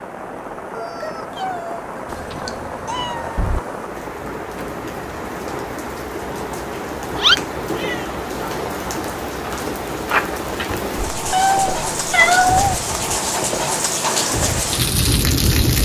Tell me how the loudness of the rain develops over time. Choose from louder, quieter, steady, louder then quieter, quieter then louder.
louder.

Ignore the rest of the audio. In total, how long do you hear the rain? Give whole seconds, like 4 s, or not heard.
16 s.